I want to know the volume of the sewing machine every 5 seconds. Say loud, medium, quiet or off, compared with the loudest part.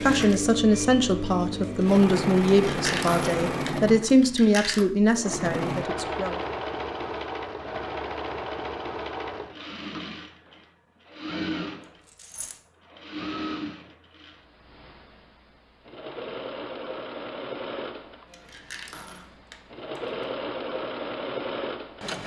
loud, loud, medium, medium, loud.